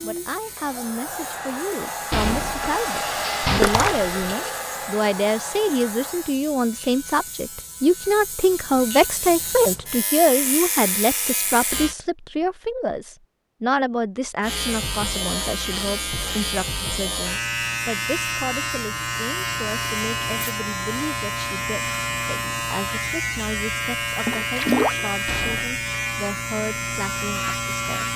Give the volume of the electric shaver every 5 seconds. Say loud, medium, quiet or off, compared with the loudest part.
quiet, medium, loud, loud, loud, loud.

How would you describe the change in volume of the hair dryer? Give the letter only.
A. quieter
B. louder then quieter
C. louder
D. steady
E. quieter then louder
B.